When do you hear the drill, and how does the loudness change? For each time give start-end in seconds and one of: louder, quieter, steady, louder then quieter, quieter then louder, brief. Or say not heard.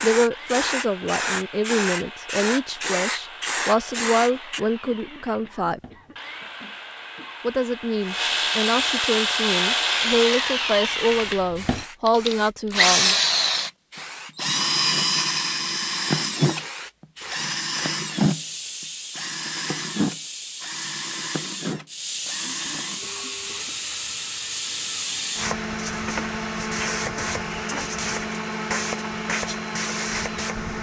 0.1-30.7 louder then quieter.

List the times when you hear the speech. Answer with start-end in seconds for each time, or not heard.
0.0-5.8, 7.4-13.2.